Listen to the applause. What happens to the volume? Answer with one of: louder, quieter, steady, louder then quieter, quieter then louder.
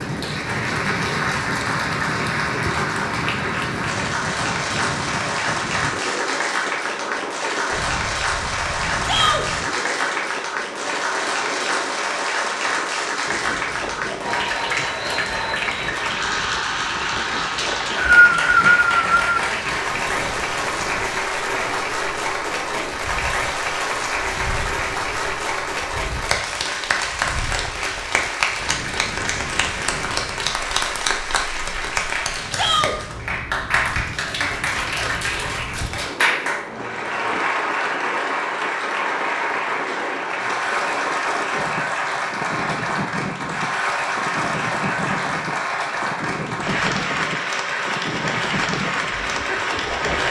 steady.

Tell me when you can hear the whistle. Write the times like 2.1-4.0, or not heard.
17.6-19.3.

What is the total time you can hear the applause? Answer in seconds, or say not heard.
50 s.